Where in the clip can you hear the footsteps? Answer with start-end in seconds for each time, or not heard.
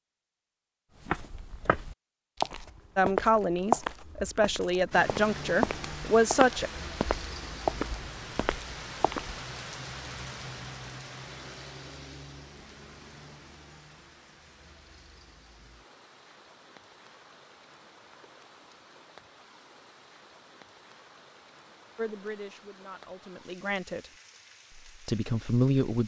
1.0-9.4.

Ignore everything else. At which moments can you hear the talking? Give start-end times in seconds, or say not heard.
3.0-6.7, 21.9-24.0, 24.8-26.0.